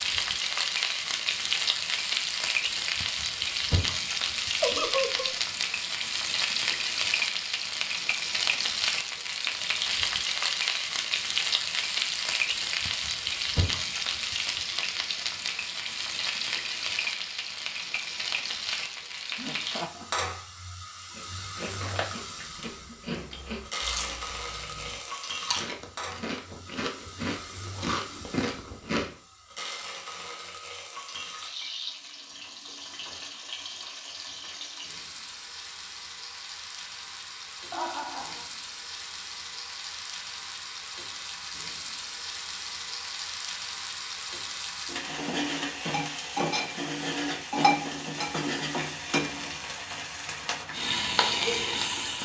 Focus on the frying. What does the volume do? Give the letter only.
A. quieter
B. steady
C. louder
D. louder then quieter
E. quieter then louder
E.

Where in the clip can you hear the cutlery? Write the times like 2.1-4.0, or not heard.
not heard.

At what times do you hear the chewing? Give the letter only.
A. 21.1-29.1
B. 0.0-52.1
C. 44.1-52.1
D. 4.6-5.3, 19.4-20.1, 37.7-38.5
A.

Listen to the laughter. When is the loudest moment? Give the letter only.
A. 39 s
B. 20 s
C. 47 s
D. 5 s
D.